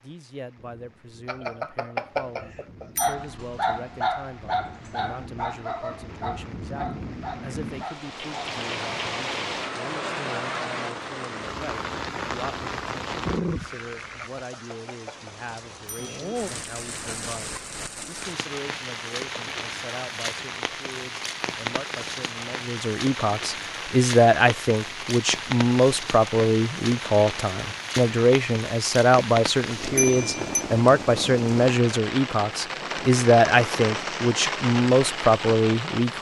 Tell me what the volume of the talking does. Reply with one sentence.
The volume of the talking goes up.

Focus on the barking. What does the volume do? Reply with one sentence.
The volume of the barking goes down.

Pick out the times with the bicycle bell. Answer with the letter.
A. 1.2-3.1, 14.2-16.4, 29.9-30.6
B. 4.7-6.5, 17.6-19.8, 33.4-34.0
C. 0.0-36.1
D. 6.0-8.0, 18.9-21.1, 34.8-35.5
A.